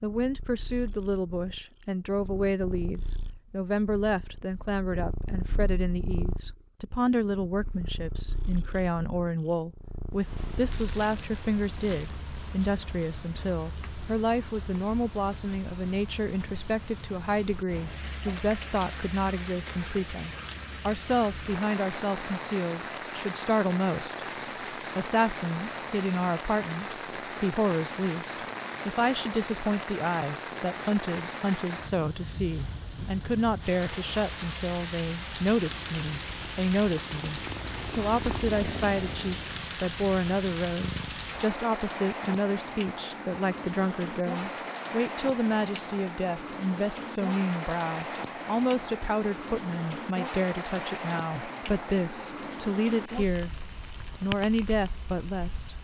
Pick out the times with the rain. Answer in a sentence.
You can hear the rain from 10.1 to 55.8 s.